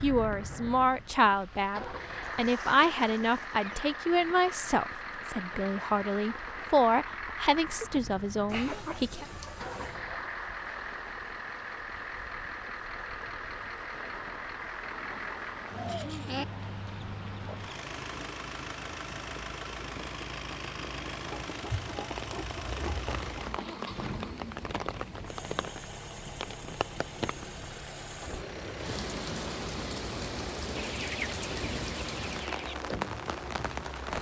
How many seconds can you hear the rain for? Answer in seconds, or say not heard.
34 s.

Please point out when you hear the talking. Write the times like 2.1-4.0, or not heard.
0.0-9.2.